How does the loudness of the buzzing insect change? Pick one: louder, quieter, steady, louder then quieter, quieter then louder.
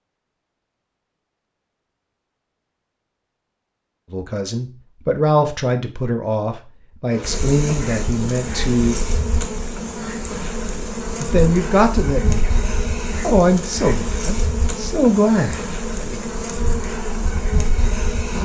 steady.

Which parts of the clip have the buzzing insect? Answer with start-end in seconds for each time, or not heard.
7.1-18.3.